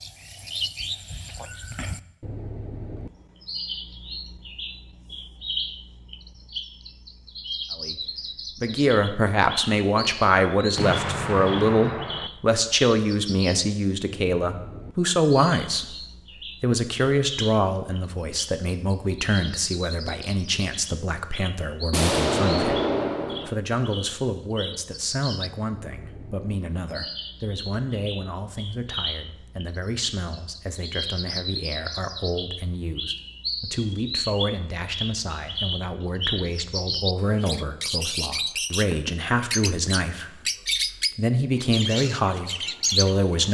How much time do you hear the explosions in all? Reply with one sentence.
You can hear the explosions for 3 seconds altogether.